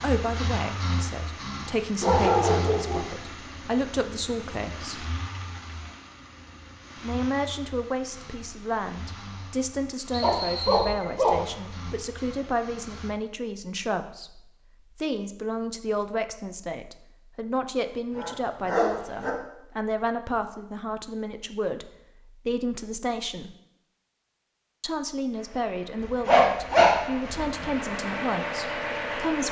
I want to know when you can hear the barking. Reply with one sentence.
You can hear the barking from 2.0 to 3.0 s, from 10.2 to 11.9 s, from 18.1 to 19.3 s and from 26.0 to 27.7 s.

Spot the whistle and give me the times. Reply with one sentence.
The whistle can be heard from 10.1 to 10.9 s.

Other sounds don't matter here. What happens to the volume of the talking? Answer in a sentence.
The loudness of the talking stays about the same.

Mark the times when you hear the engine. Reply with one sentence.
You can hear the engine from 0.0 to 13.1 s and from 25.3 to 29.4 s.